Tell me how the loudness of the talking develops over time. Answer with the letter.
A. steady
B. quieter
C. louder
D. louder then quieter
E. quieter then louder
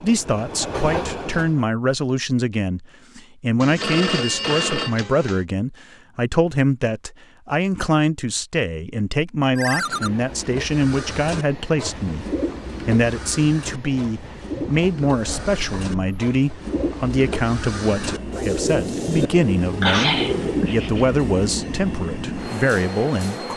A.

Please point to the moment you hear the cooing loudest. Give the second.
20 s.